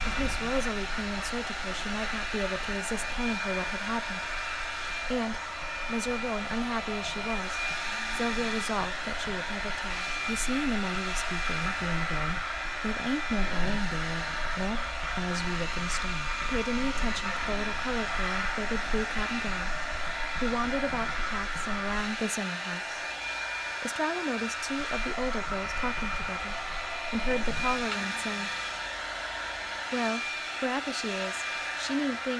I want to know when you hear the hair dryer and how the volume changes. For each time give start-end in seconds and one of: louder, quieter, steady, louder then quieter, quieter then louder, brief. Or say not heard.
0.0-32.3 steady.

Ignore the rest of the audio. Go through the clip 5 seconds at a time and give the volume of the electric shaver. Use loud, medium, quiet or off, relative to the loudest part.
medium, medium, loud, loud, loud, loud, off.